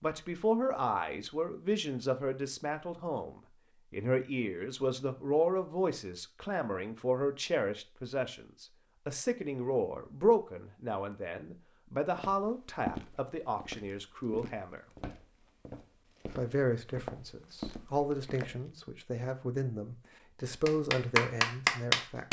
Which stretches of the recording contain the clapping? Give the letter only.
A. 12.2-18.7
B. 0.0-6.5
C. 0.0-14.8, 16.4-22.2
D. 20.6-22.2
D.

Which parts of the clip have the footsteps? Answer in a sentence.
You can hear the footsteps from 12.2 to 18.7 s.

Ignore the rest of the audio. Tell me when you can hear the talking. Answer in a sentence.
You can hear the talking from 0.0 to 14.8 s and from 16.4 to 22.2 s.